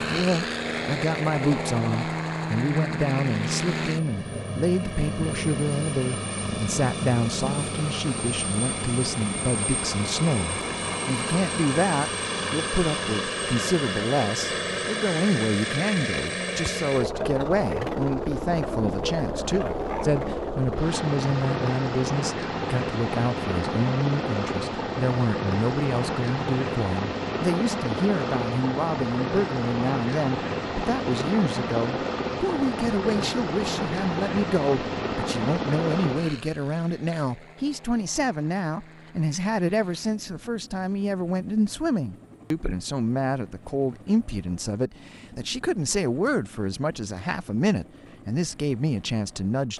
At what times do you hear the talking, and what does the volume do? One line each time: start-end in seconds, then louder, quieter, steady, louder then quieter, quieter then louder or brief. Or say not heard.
0.0-49.7 steady.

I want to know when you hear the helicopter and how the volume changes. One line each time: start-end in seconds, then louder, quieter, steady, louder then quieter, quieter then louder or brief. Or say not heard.
0.0-49.7 quieter.